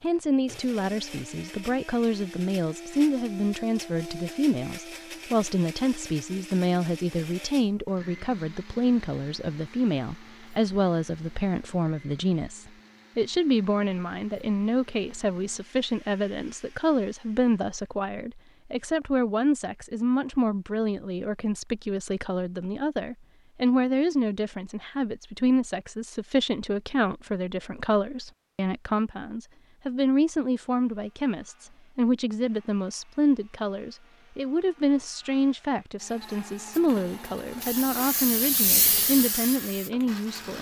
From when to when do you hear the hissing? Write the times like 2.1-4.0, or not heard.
36.7-40.5.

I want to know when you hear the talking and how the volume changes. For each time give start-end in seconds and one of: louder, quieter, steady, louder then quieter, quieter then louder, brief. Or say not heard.
0.0-40.5 steady.